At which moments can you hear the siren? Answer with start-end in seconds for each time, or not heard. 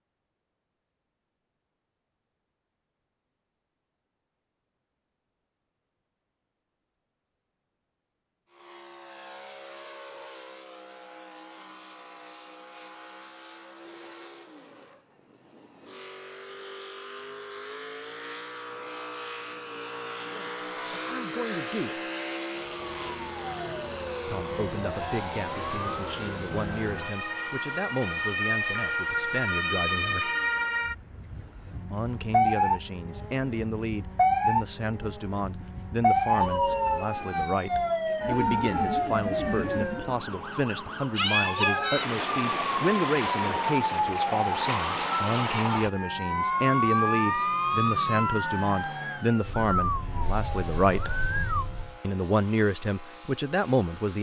22.6-52.0.